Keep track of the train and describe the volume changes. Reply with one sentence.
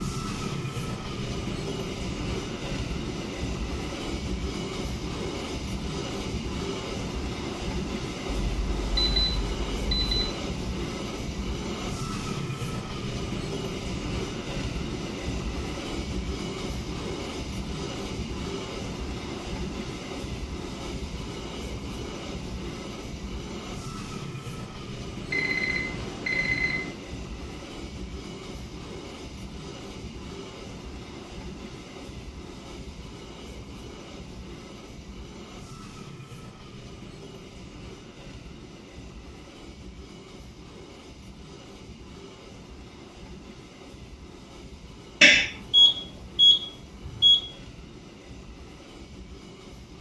The loudness of the train goes down.